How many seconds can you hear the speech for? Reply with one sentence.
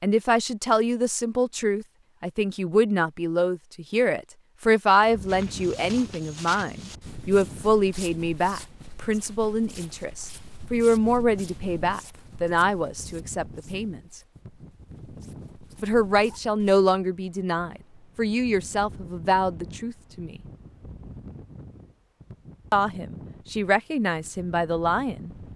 You can hear the speech for 21 seconds altogether.